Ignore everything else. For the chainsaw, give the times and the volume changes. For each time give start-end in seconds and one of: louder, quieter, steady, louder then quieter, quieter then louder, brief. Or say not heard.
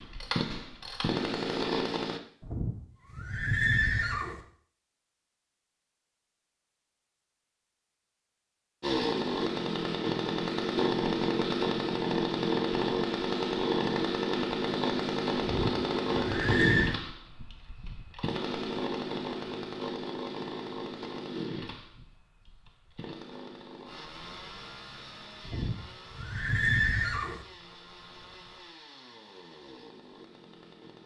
0.0-2.2 brief
8.8-31.0 quieter.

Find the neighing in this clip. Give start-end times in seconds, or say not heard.
2.4-4.4, 15.4-16.9, 25.4-27.4.